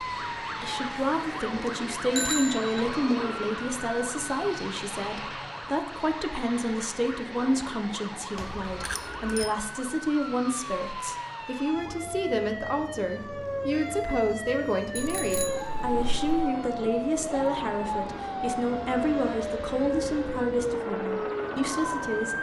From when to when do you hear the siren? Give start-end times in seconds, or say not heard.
0.0-22.3.